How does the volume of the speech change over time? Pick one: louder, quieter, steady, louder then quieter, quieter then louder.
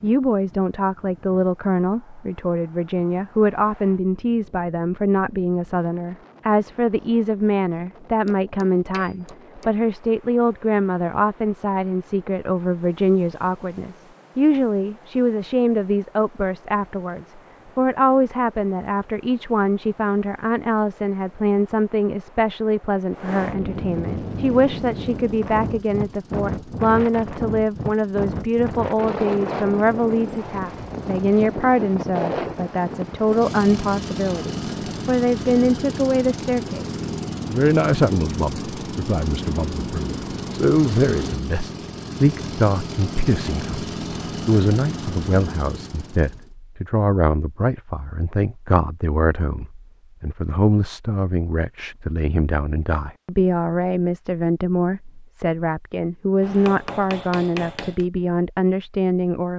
steady.